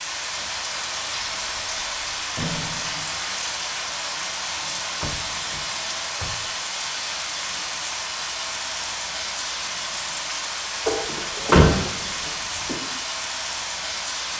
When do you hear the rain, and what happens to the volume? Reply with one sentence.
The rain can be heard from 0.0 to 14.3 s, at a steady volume.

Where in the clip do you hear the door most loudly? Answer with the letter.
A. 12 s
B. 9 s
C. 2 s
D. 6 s
A.